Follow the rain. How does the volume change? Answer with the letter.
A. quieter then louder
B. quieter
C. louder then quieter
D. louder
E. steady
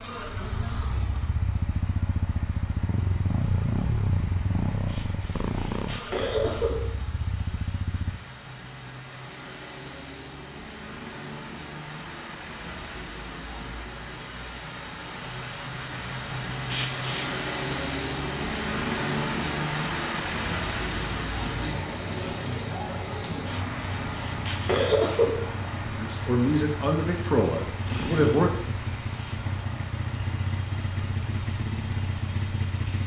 C.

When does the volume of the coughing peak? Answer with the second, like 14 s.
25 s.